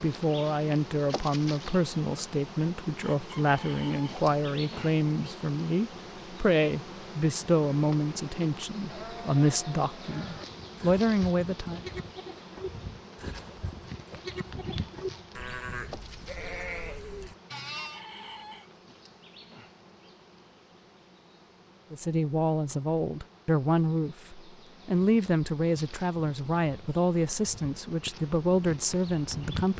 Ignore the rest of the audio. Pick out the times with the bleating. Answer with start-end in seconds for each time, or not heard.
8.8-18.0.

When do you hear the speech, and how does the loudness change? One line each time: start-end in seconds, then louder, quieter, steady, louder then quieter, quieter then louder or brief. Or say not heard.
0.0-11.8 steady
21.9-29.7 steady.